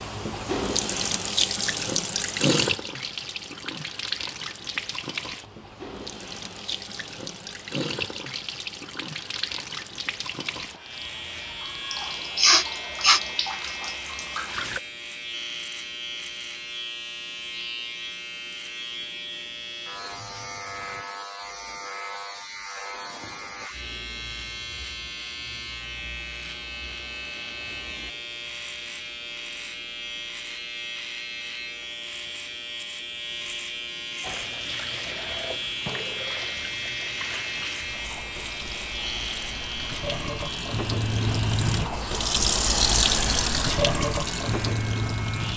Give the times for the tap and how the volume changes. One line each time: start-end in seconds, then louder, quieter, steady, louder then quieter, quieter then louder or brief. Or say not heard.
0.0-14.8 quieter
34.2-45.5 louder.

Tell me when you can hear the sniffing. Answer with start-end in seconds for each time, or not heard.
12.3-13.2.